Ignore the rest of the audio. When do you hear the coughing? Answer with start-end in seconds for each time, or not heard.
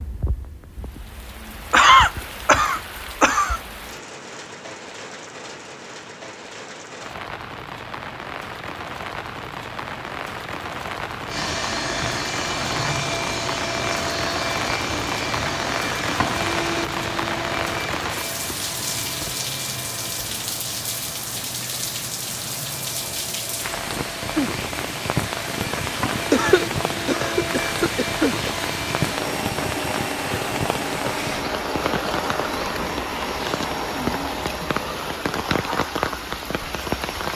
1.7-3.6, 26.3-28.5.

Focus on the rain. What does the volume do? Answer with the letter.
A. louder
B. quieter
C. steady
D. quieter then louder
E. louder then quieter
A.